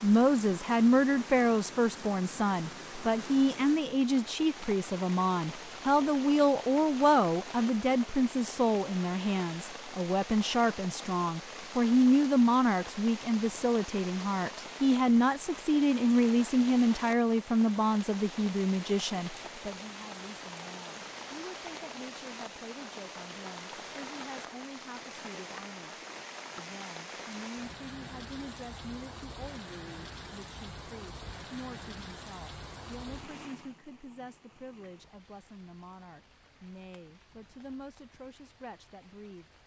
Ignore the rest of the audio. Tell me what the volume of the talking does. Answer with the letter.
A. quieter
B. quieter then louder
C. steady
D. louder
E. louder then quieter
A.